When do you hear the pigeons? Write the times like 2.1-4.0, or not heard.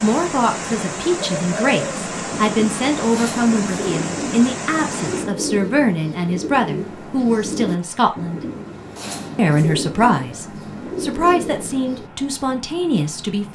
1.1-12.1.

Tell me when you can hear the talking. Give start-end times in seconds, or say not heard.
0.0-8.4, 9.3-13.5.